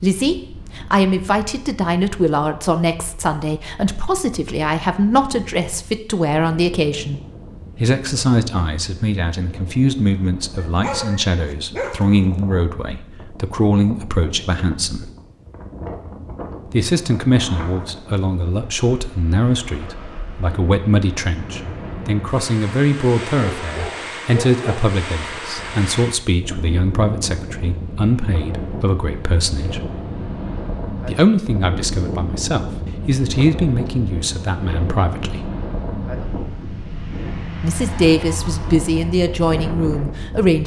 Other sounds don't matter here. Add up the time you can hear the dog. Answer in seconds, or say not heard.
3 s.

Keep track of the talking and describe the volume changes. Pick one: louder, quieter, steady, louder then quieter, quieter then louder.
steady.